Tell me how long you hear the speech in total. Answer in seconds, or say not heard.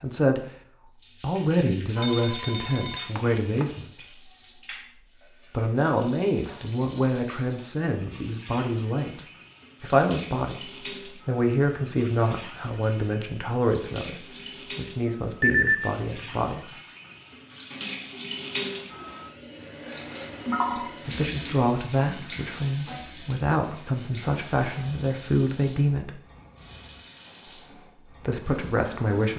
21 s.